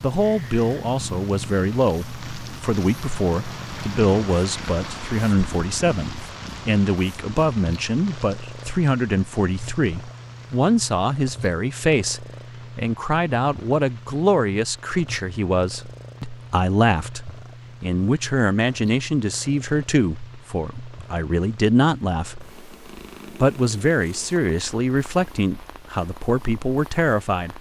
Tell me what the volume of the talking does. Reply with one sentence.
The volume of the talking stays about the same.